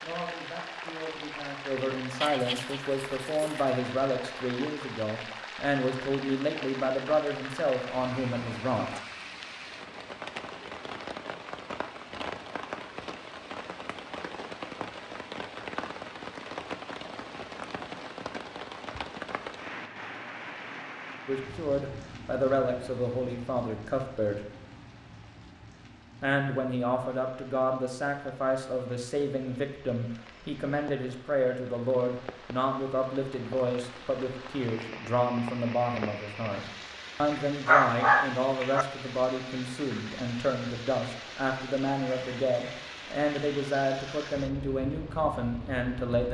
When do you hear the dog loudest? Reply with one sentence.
The loudest moment of the dog is at 38 seconds.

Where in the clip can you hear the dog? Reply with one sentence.
You can hear the dog from 2.2 to 3.6 s and from 37.6 to 38.9 s.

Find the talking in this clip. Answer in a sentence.
The talking can be heard from 0.0 to 8.9 s, from 21.2 to 24.4 s and from 26.2 to 46.2 s.